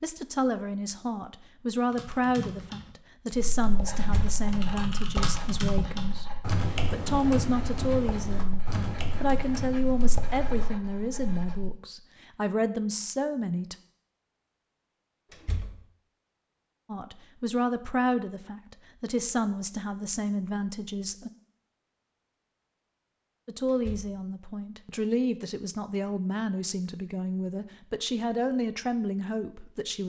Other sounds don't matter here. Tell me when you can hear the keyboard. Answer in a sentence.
You can hear the keyboard from 1.9 to 10.7 s.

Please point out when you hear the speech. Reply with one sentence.
You can hear the speech from 0.0 to 13.8 s, from 16.9 to 21.3 s and from 23.4 to 30.0 s.